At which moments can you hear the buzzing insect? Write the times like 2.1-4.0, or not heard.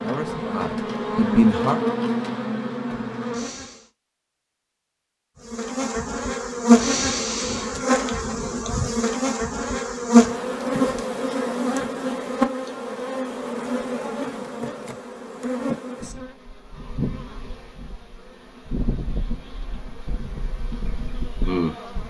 0.0-3.9, 5.5-22.0.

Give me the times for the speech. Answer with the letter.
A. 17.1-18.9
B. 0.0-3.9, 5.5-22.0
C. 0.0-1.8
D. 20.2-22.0
C.